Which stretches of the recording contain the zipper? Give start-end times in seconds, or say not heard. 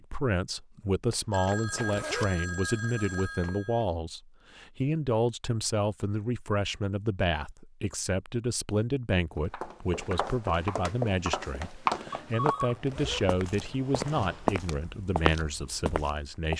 1.7-2.3, 12.7-13.2.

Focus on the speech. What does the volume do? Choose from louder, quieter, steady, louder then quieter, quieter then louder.
steady.